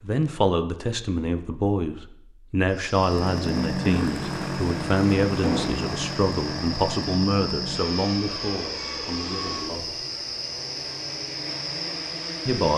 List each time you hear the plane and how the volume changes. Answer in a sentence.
The plane can be heard from 3.0 to 12.7 s, getting quieter.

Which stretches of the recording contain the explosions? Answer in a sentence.
You can hear the explosions from 5.4 to 5.9 s.